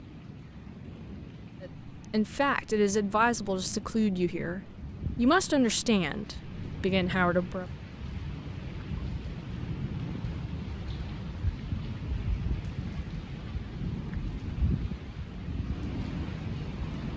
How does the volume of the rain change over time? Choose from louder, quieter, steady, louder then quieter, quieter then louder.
louder.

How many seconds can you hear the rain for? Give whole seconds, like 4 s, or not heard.
17 s.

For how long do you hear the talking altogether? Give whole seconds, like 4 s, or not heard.
6 s.